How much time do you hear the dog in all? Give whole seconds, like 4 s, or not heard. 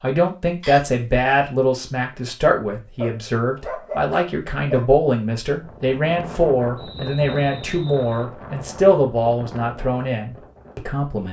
2 s.